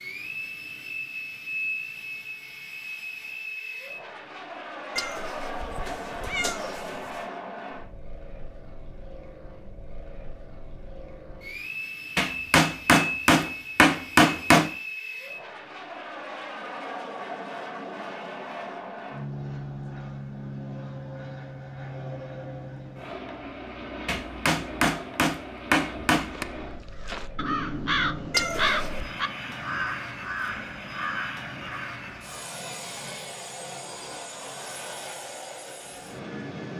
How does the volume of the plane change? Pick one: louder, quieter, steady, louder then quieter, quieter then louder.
steady.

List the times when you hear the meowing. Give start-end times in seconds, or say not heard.
5.0-7.2, 28.3-29.1.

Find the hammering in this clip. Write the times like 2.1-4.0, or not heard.
12.2-14.7, 24.1-26.4.